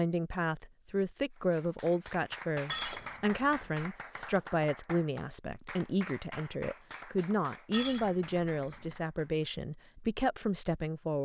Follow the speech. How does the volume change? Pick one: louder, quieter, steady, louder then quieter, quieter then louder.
steady.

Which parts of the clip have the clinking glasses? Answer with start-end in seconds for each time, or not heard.
2.7-3.9, 7.7-8.9.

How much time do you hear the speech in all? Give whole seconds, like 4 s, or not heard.
11 s.